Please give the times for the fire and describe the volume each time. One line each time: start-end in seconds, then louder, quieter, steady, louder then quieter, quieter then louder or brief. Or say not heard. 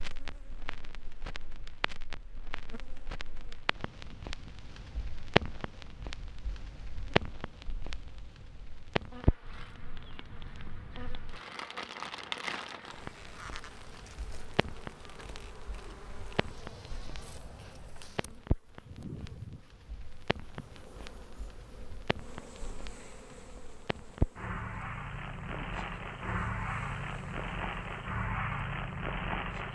0.0-29.7 quieter then louder.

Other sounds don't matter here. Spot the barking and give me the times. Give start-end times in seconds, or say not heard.
not heard.